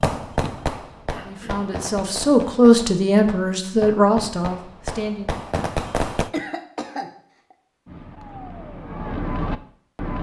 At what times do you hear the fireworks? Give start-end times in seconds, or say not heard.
0.0-6.3, 7.8-10.1.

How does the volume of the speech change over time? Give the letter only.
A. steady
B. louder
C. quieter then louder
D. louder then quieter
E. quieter
D.